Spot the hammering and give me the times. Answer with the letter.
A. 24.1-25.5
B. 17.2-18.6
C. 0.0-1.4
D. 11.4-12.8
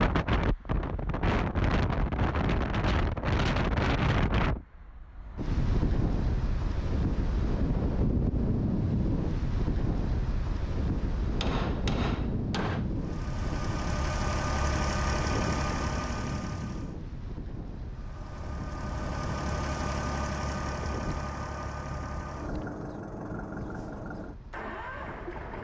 D.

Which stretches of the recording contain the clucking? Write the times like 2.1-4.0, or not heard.
not heard.